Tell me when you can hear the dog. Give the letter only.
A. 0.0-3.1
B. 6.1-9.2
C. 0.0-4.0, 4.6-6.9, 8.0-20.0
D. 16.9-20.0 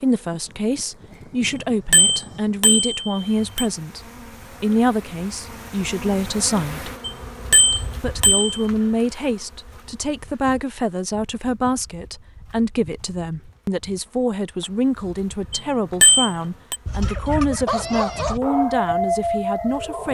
D.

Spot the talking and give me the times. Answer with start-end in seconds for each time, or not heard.
0.0-4.0, 4.6-6.9, 8.0-20.0.